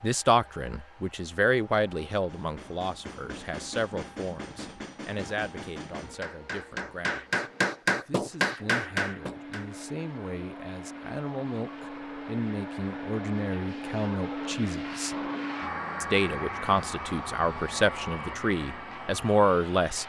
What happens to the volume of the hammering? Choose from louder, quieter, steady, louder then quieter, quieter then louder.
louder.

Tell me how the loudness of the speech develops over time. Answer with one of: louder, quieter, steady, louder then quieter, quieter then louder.
quieter then louder.